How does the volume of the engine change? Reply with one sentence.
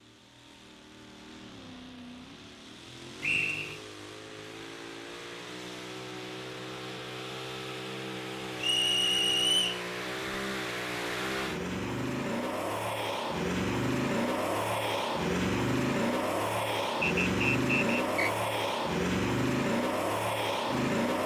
The loudness of the engine goes up.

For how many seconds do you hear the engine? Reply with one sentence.
The engine can be heard for 21 seconds in total.